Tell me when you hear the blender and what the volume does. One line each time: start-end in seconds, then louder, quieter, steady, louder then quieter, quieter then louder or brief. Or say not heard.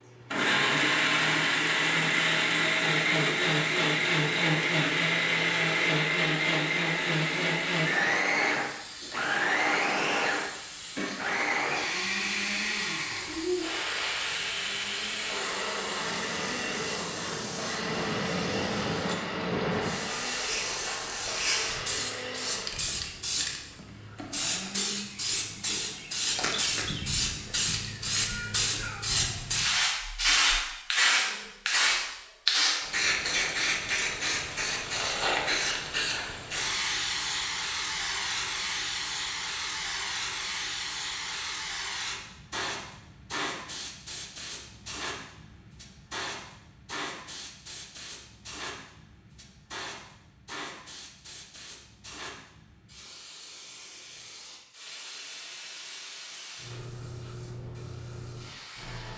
0.0-25.0 quieter.